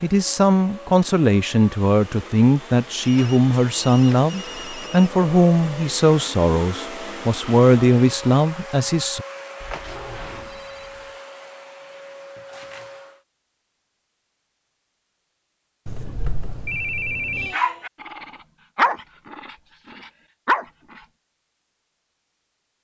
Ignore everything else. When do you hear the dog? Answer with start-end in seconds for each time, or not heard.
17.4-21.0.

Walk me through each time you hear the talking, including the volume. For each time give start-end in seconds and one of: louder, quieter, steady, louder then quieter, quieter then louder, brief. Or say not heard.
0.0-9.2 steady.